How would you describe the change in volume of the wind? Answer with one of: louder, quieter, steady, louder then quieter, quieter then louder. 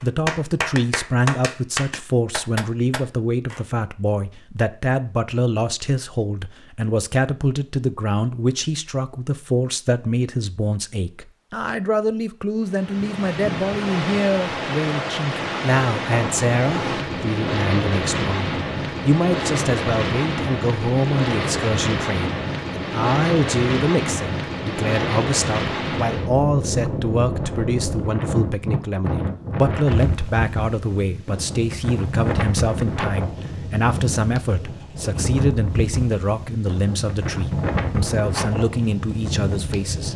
steady.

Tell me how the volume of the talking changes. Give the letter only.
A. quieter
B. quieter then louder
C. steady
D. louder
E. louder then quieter
C.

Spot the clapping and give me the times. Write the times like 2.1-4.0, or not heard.
0.0-3.6.